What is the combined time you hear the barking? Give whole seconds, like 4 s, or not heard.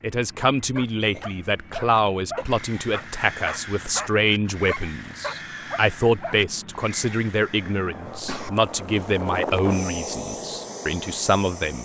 6 s.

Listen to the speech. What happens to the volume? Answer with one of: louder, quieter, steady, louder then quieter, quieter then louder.
steady.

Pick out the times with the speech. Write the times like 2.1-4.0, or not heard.
0.0-11.7.